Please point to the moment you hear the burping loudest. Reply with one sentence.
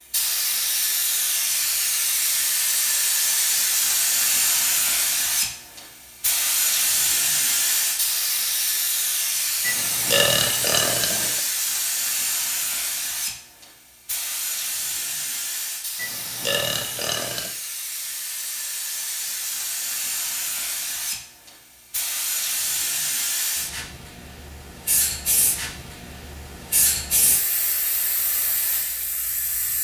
The volume of the burping peaks at 10 seconds.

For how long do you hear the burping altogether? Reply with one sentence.
You can hear the burping for 3 seconds altogether.